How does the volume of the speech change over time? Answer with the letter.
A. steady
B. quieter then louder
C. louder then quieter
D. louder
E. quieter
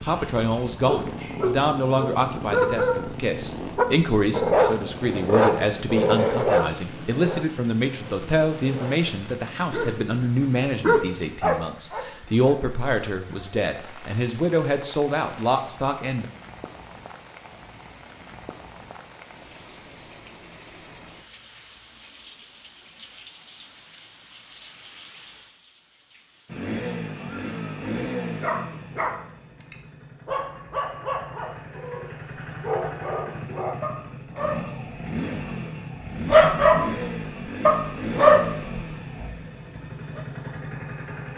A.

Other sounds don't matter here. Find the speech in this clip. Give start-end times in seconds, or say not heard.
0.0-16.2.